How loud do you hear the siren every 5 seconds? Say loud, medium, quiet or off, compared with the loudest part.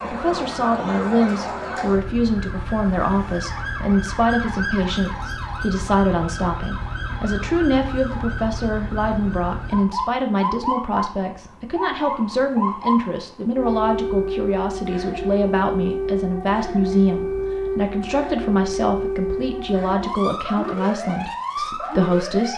loud, medium, loud, loud, loud.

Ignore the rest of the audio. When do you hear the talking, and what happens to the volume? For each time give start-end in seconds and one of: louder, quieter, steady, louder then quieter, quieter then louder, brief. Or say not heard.
0.0-22.5 steady.